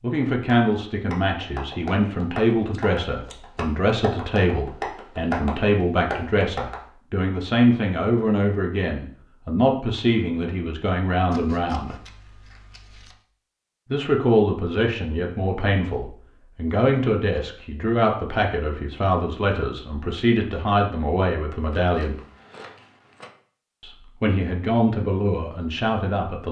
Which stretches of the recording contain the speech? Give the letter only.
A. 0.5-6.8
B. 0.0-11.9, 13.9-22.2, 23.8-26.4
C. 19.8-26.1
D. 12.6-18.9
B.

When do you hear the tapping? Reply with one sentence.
The tapping can be heard from 0.5 to 6.8 s.